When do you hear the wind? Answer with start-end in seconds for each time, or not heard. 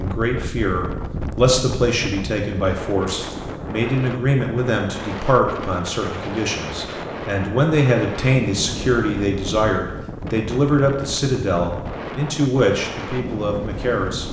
0.0-14.2.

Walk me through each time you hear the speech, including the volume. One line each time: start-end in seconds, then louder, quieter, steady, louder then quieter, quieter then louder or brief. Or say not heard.
0.0-14.2 steady.